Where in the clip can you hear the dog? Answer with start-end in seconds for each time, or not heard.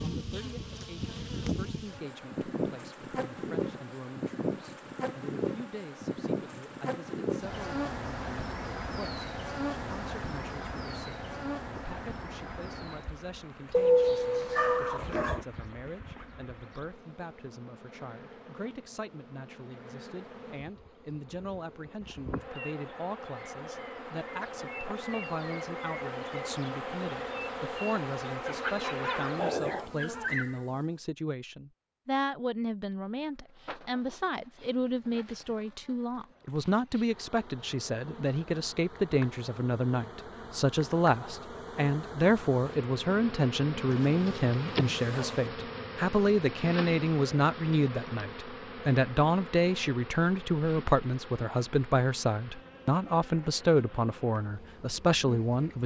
13.7-15.4, 28.4-30.6, 43.9-45.5.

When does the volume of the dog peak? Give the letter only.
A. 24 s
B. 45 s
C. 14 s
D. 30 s
C.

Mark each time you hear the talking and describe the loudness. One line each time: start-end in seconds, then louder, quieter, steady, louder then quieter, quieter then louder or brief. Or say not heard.
0.0-55.8 louder.